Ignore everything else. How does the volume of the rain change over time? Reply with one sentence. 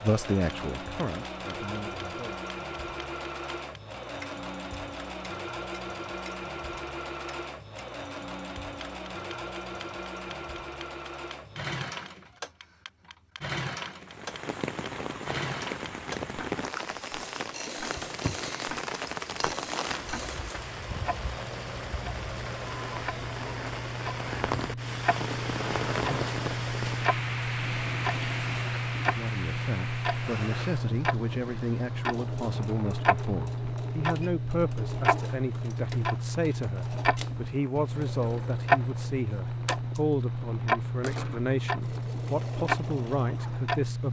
The volume of the rain goes down.